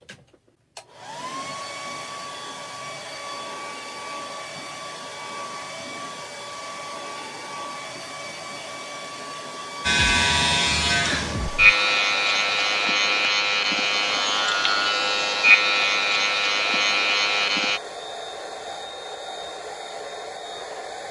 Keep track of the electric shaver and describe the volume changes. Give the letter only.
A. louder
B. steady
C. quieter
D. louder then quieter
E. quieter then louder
B.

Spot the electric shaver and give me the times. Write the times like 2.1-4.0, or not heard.
9.8-17.8.